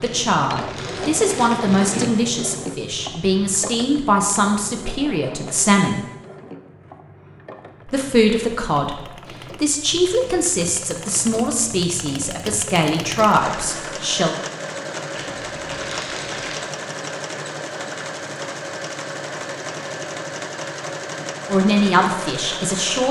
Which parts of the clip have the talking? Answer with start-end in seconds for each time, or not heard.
0.0-6.0, 7.8-9.0, 9.6-14.3, 21.4-23.0.